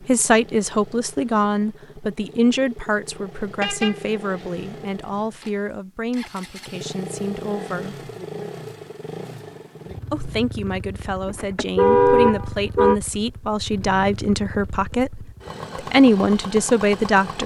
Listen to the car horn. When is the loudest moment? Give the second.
12 s.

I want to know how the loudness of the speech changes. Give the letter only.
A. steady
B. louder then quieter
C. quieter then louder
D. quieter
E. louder
C.